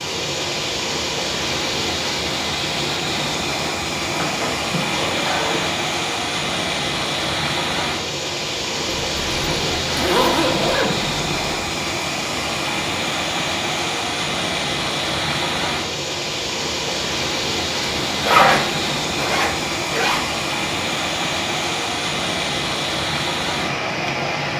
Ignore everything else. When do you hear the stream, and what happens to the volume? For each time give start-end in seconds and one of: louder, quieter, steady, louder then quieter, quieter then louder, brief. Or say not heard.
0.0-24.5 steady.